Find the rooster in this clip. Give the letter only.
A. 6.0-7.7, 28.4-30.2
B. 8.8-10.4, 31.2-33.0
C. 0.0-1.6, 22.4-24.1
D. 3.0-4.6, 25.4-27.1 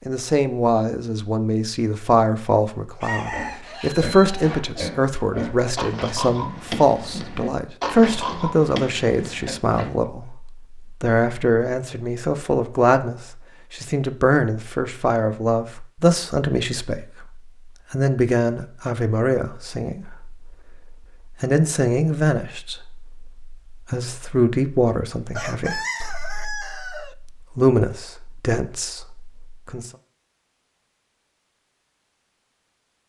D.